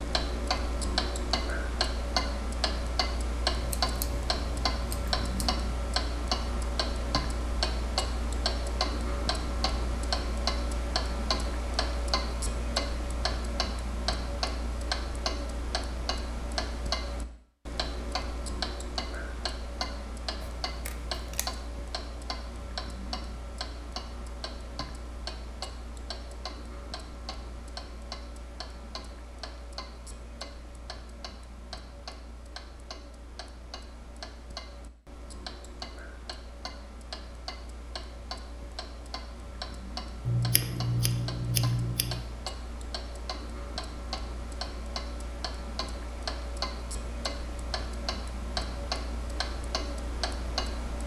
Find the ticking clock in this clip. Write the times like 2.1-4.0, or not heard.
0.0-51.0.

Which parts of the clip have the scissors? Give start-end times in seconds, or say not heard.
3.5-5.5, 20.4-21.4, 40.2-42.2.